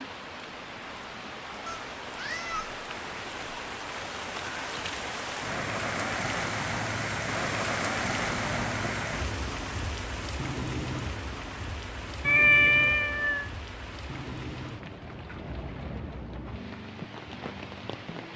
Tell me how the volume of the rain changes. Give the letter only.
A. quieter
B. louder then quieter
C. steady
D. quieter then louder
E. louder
B.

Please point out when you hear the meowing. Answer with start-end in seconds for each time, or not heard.
1.6-2.8, 8.0-9.1, 12.2-13.5.